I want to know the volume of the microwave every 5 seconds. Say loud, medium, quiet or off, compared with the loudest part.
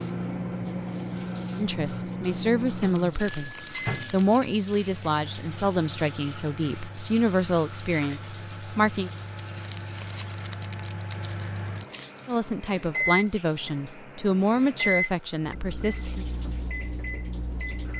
loud, medium, loud, loud.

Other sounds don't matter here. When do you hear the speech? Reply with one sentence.
You can hear the speech from 1.6 to 9.1 s and from 12.2 to 16.2 s.